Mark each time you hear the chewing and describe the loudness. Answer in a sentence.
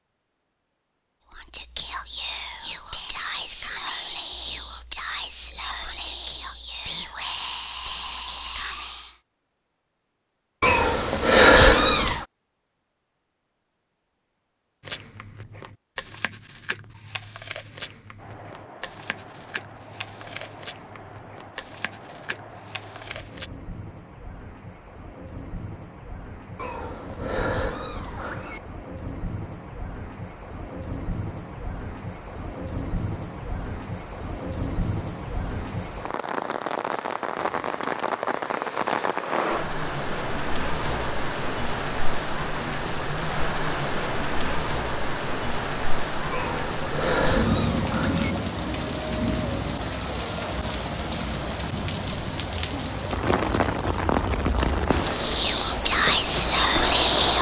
The chewing can be heard from 14.8 to 23.5 s, at a steady volume.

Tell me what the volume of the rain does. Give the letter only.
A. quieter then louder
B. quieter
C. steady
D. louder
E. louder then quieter
D.